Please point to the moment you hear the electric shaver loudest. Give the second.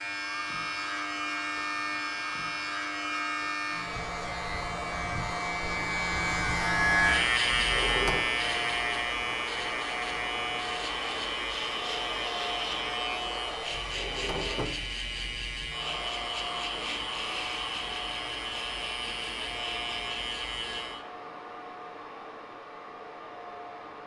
7 s.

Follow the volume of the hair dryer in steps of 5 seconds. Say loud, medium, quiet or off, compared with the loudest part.
loud, loud, loud, loud, medium.